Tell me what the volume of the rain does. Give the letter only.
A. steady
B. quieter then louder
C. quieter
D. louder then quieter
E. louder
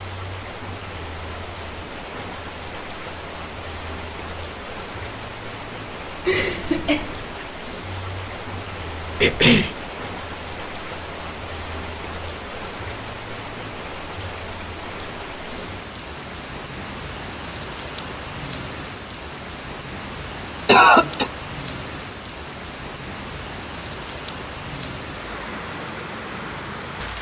A.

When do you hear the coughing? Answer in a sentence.
You can hear the coughing from 6.2 to 7.5 s, from 9.2 to 9.8 s and from 20.6 to 21.3 s.